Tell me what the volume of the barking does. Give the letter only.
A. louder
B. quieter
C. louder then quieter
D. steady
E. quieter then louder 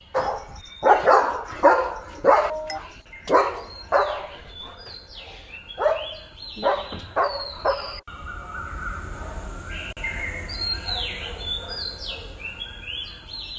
B.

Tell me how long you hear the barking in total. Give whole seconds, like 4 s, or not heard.
8 s.